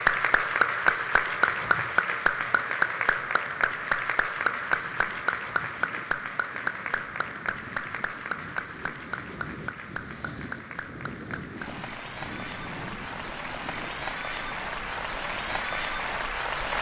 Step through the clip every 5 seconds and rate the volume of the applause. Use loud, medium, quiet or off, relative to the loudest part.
loud, medium, medium, medium.